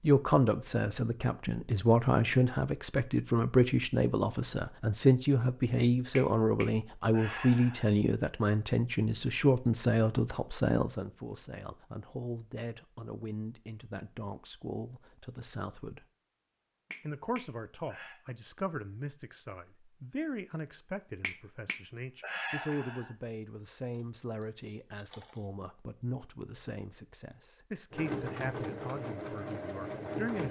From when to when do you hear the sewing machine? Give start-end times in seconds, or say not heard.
27.9-30.4.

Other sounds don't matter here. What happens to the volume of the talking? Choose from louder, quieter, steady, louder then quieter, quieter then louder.
quieter.